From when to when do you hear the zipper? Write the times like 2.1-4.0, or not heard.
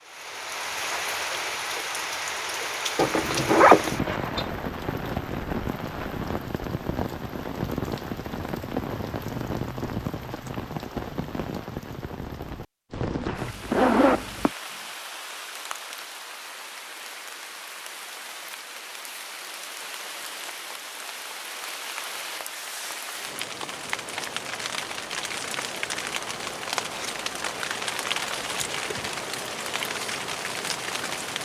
3.0-4.5, 13.2-14.5, 28.4-29.1.